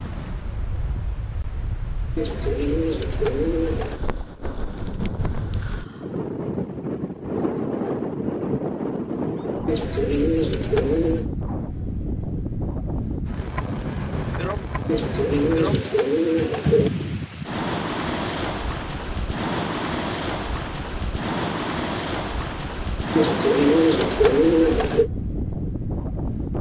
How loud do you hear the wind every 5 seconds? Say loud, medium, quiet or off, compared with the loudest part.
medium, loud, loud, loud, loud, loud.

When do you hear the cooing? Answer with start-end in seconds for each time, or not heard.
2.1-4.0, 9.7-11.2, 14.8-16.9, 23.1-25.1.